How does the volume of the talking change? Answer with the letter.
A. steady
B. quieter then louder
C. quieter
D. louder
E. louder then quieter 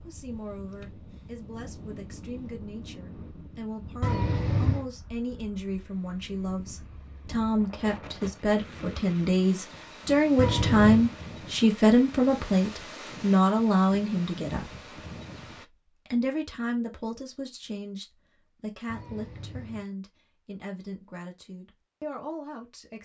E.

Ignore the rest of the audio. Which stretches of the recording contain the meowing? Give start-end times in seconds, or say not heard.
4.0-4.8, 10.3-11.1, 18.9-19.9.